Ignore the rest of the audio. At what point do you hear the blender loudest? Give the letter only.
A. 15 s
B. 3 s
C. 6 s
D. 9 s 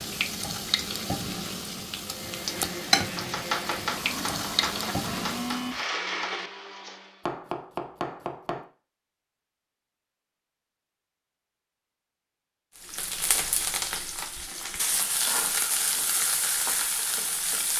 C.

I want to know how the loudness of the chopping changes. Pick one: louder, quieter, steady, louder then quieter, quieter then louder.
quieter then louder.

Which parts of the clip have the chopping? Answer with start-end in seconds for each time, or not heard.
3.0-8.7.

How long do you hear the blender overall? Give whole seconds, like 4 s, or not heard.
5 s.